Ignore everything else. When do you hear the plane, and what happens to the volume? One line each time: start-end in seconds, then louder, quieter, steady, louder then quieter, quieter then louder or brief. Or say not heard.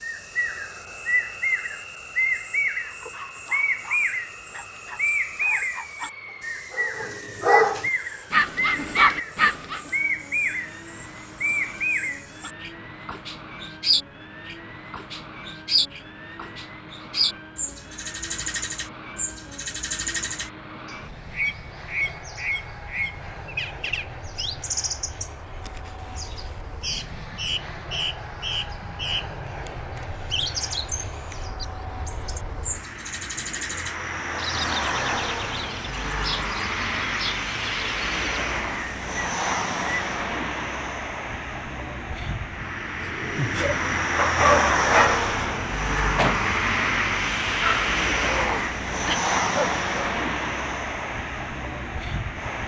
0.0-52.6 louder.